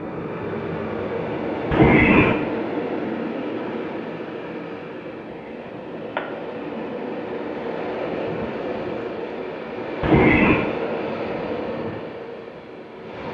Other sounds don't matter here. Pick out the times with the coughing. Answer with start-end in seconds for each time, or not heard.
1.7-2.4, 5.2-6.2, 10.0-10.7.